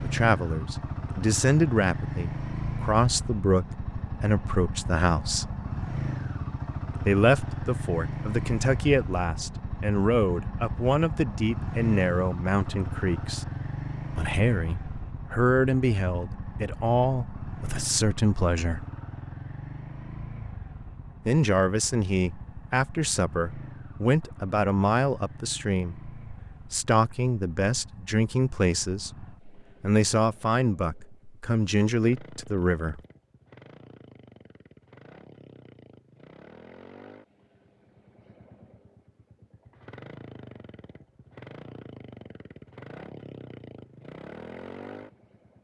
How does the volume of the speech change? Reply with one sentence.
The loudness of the speech stays about the same.